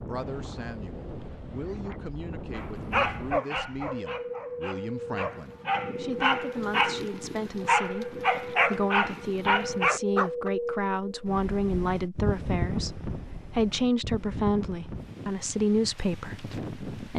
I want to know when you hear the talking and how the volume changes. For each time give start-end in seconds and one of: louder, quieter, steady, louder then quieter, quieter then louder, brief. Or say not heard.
0.0-17.1 louder.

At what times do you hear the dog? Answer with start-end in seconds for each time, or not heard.
2.5-10.5.